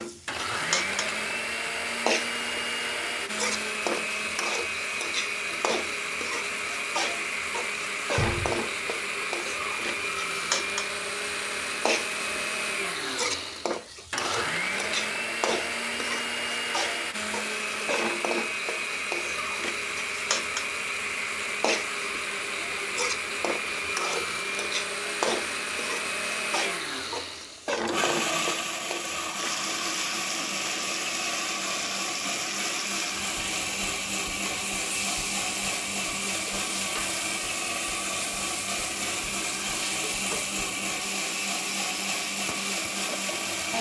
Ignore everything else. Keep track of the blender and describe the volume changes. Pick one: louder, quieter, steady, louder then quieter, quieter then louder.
steady.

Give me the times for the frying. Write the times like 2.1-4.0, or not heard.
0.0-43.6.